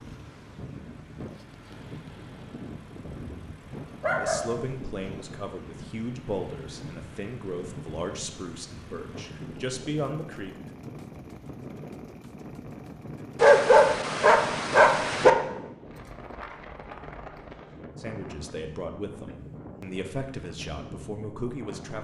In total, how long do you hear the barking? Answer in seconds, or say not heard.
3 s.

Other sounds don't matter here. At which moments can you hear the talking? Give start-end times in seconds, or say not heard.
4.2-10.7, 17.9-21.9.